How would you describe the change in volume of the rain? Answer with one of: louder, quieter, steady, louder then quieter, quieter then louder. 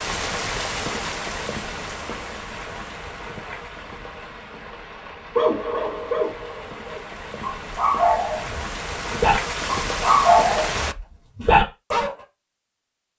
quieter then louder.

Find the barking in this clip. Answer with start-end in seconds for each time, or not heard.
5.3-12.1.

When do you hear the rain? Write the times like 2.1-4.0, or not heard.
0.0-10.9.